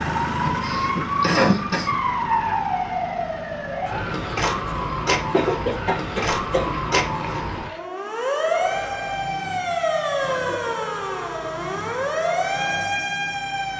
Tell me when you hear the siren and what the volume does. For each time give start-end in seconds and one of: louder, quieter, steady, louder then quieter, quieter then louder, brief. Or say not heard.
0.0-13.7 steady.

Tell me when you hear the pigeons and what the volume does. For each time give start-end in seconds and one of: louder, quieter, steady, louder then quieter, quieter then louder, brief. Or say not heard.
not heard.